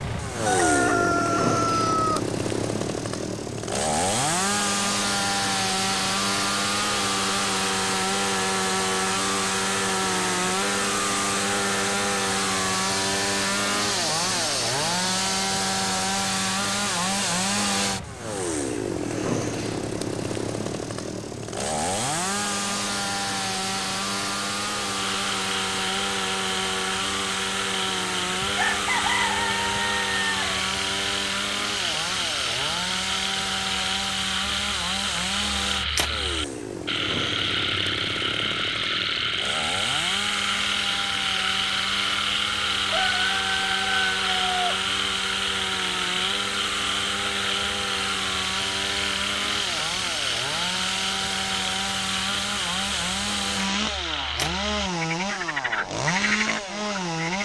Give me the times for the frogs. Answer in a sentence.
The frogs can be heard from 24.9 to 57.4 s.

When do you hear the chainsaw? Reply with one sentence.
You can hear the chainsaw from 0.0 to 57.4 s.